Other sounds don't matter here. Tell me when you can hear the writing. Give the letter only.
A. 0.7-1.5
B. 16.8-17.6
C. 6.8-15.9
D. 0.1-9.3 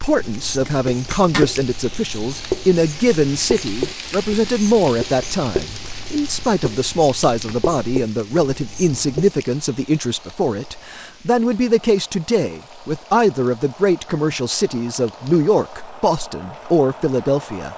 D.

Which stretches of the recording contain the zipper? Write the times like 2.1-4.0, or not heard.
0.7-1.5.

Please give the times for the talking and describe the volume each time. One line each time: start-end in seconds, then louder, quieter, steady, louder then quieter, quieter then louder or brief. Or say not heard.
0.0-17.7 steady.